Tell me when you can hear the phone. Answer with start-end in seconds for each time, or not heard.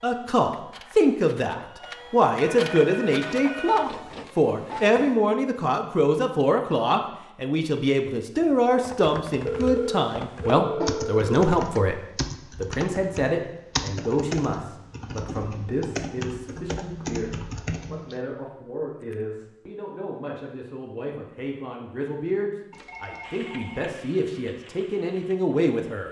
2.4-3.9, 9.4-11.2, 22.7-23.9.